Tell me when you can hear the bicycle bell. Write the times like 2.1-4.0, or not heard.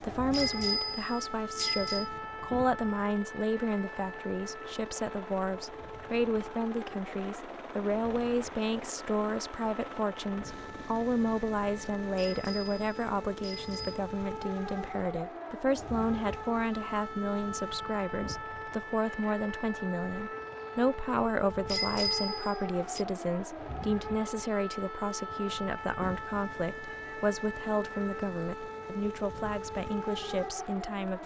0.3-2.0, 12.2-14.0, 21.6-23.1.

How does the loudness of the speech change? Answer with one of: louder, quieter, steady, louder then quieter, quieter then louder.
steady.